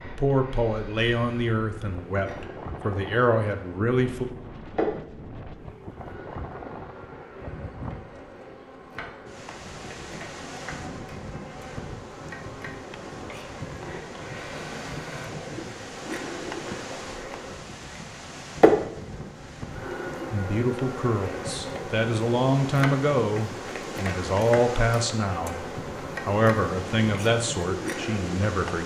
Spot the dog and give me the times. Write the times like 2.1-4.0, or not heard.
not heard.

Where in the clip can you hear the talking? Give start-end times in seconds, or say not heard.
0.0-4.2, 20.3-25.6, 26.2-28.8.